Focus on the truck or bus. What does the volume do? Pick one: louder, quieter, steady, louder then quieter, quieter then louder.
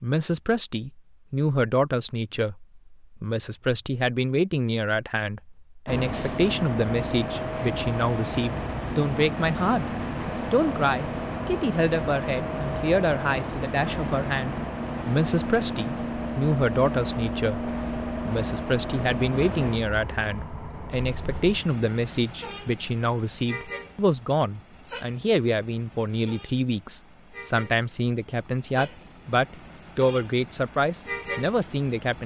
quieter.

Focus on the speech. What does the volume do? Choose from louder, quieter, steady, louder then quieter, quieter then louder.
steady.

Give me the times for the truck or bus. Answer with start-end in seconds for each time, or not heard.
5.8-32.2.